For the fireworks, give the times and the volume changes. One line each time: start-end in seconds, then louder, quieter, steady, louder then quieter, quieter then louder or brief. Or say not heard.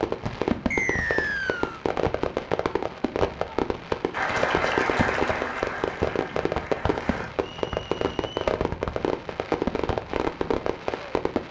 0.0-11.4 steady.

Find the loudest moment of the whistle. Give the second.
1 s.